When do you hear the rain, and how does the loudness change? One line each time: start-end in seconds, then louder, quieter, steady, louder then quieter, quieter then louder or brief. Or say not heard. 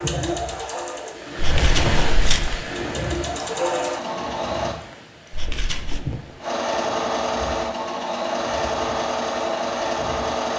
0.0-10.5 quieter.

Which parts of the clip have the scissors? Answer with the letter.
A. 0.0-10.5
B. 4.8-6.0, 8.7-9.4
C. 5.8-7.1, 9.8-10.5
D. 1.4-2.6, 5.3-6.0
D.